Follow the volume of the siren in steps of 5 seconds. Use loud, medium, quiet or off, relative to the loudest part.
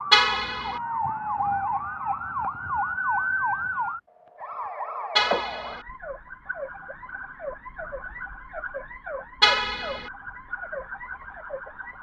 loud, medium, medium.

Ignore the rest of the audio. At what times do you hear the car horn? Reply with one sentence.
The car horn can be heard from 0.1 to 0.8 s, from 5.2 to 5.8 s and from 9.4 to 10.1 s.